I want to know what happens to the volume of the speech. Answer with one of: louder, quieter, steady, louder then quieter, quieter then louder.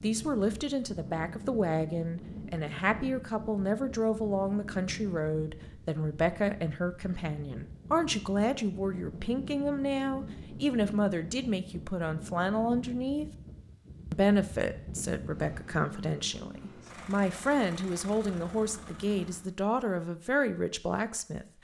steady.